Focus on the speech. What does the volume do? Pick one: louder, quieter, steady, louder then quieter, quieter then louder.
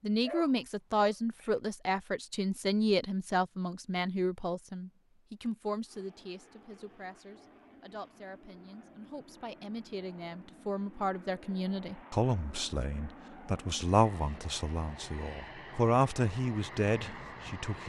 quieter then louder.